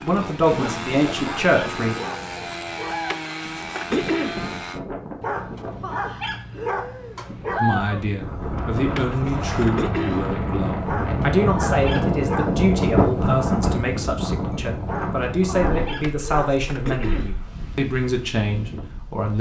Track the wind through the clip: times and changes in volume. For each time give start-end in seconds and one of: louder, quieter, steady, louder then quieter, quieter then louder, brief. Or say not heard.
0.0-19.3 louder then quieter.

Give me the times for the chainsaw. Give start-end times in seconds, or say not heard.
0.0-4.8.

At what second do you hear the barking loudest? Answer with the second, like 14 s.
8 s.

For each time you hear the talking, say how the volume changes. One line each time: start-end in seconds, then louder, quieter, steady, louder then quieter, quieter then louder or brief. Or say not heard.
0.0-1.9 brief
7.5-19.3 steady.